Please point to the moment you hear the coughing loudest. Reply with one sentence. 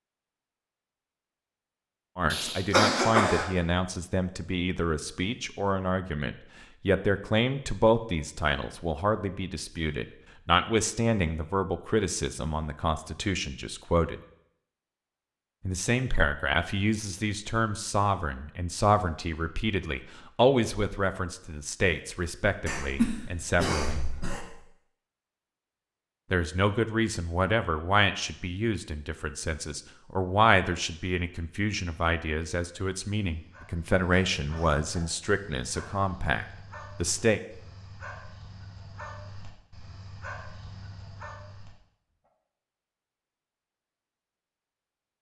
The loudest moment of the coughing is at 3 seconds.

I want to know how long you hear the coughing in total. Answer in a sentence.
The coughing can be heard for 4 seconds in total.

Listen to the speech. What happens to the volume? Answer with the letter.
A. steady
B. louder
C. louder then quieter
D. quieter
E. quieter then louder
A.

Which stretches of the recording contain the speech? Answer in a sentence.
You can hear the speech from 2.1 to 14.2 s, from 15.7 to 24.0 s and from 26.3 to 37.4 s.